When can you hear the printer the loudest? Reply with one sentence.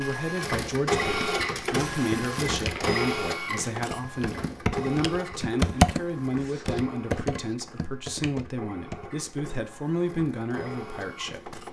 The loudest moment of the printer is at 1 second.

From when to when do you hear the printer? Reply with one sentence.
You can hear the printer from 0.0 to 11.6 s.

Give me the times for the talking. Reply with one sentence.
The talking can be heard from 0.0 to 11.6 s.